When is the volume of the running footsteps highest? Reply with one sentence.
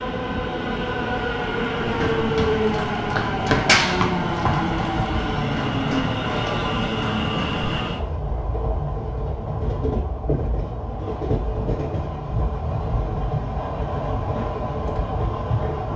The volume of the running footsteps peaks at 4 seconds.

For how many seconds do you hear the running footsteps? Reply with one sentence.
The running footsteps can be heard for 6 seconds in total.